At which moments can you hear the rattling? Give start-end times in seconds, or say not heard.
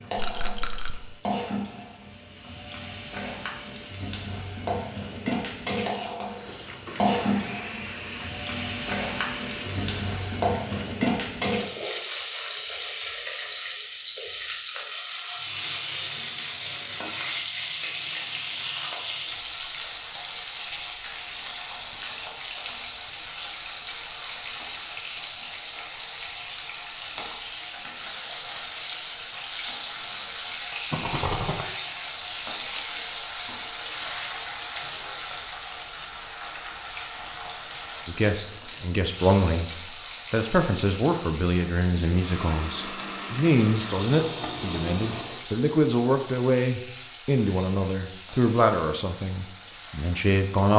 0.1-0.9, 30.9-31.6.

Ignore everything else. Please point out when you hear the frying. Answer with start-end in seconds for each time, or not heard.
0.0-50.7.